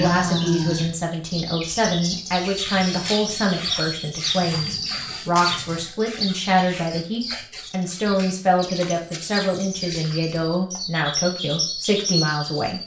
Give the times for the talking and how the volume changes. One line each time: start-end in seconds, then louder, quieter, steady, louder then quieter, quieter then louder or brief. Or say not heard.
0.0-12.8 steady.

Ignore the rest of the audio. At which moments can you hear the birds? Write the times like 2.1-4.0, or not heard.
0.0-12.8.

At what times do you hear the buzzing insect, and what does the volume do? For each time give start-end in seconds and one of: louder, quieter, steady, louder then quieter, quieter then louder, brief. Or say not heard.
not heard.